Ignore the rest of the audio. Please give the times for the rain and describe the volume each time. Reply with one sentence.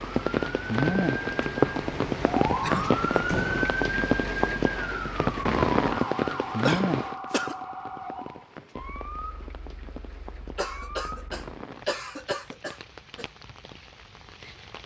You can hear the rain from 0.0 to 14.8 s, getting quieter.